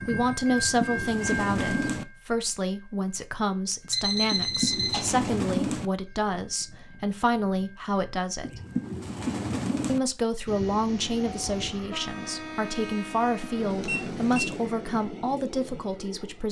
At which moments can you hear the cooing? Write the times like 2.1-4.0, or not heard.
0.5-2.0, 4.3-5.9, 8.4-10.0, 13.1-14.7.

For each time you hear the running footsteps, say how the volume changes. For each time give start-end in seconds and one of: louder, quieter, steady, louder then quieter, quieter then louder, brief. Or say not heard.
not heard.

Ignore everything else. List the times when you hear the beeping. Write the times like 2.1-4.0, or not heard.
3.9-5.3, 13.8-14.5.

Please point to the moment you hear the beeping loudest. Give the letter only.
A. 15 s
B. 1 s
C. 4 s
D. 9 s
C.